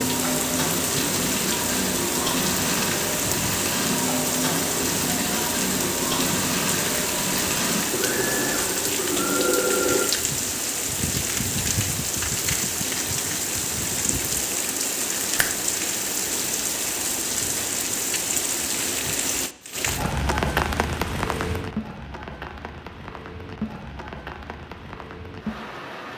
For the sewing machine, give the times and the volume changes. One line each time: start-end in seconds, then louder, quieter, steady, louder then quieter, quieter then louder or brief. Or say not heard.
0.0-10.1 steady.